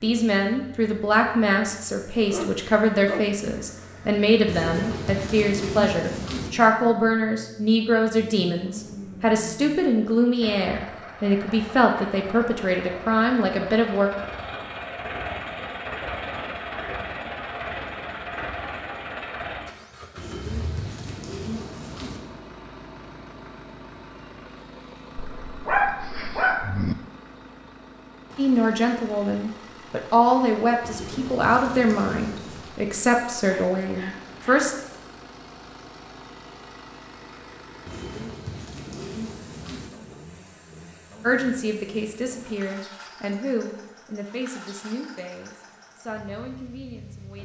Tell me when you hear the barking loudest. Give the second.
26 s.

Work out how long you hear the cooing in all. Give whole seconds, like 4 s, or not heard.
8 s.